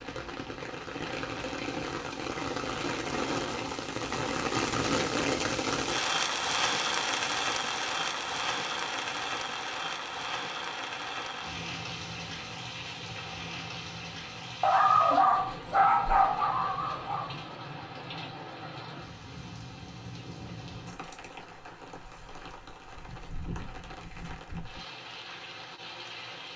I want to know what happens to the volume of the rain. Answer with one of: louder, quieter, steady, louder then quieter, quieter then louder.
quieter.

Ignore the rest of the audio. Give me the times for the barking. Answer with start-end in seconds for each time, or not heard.
14.6-17.4.